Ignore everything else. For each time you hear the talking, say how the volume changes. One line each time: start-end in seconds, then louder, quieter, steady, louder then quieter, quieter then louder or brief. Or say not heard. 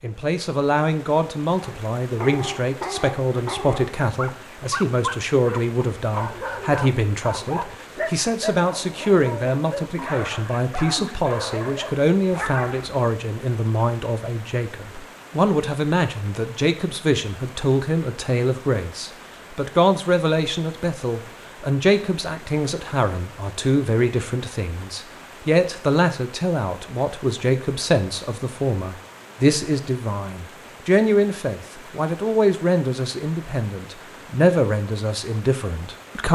0.0-36.3 steady.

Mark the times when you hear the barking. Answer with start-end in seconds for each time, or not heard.
1.6-13.0.